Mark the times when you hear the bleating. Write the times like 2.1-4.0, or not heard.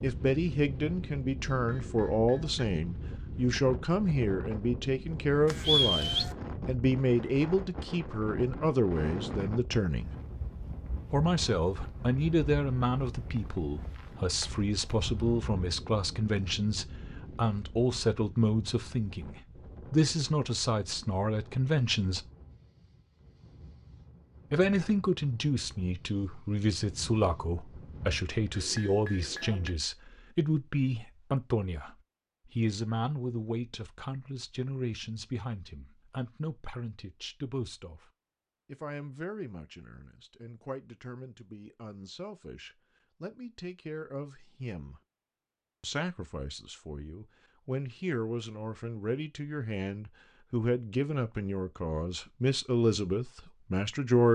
5.5-6.3.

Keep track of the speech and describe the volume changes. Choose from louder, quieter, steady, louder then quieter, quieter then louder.
quieter then louder.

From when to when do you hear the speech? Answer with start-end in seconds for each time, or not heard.
0.0-10.2, 11.1-22.2, 24.5-45.0, 45.8-54.2.